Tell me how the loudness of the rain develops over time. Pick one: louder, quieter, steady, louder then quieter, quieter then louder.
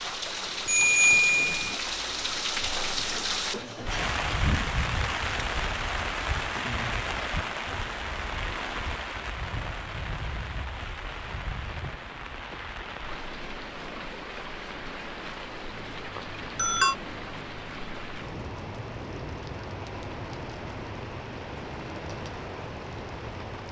quieter.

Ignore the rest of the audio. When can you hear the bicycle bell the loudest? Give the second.
1 s.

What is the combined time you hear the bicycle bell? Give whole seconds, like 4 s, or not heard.
2 s.